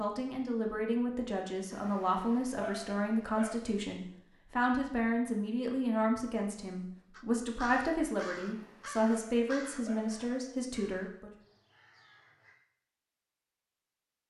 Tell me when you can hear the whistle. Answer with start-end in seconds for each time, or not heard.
not heard.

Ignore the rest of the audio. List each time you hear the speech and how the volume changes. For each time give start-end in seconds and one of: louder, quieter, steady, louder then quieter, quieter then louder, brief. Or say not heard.
0.0-11.3 steady.